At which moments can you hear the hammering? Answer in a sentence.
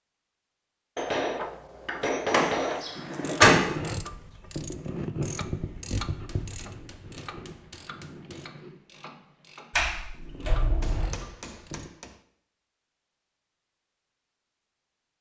The hammering can be heard from 0.9 to 2.8 s, from 6.0 to 8.4 s and from 10.8 to 12.1 s.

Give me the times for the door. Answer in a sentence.
You can hear the door from 2.3 to 3.6 s and from 9.7 to 11.2 s.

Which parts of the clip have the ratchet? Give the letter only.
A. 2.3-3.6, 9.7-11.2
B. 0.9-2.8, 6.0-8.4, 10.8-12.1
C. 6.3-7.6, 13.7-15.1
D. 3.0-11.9
D.